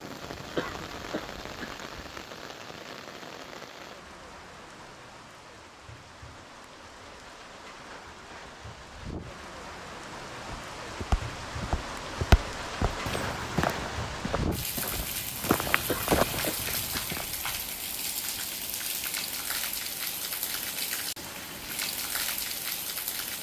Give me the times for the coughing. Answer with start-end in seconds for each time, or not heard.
0.6-1.8, 15.8-17.1.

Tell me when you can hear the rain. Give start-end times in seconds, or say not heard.
0.0-23.3.